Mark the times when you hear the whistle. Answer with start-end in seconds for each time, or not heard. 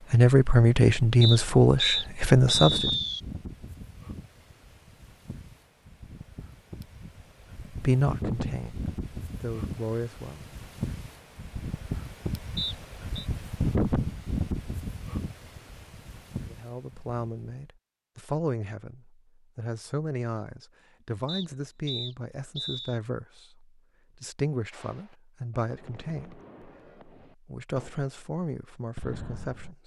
1.2-3.2, 12.6-13.2, 21.2-23.0.